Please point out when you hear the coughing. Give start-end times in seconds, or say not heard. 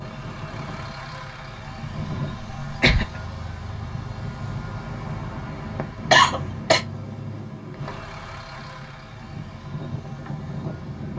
2.6-3.2, 6.1-6.8.